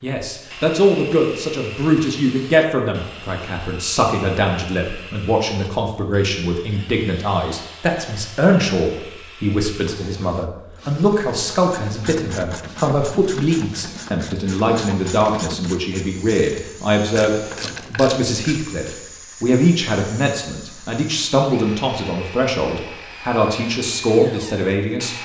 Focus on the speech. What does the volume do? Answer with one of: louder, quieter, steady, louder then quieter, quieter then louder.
steady.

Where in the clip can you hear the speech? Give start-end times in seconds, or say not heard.
0.0-25.1.